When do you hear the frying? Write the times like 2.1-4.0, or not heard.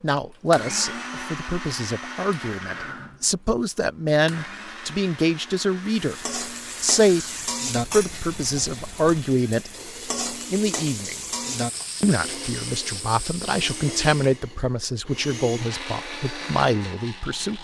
5.9-14.4.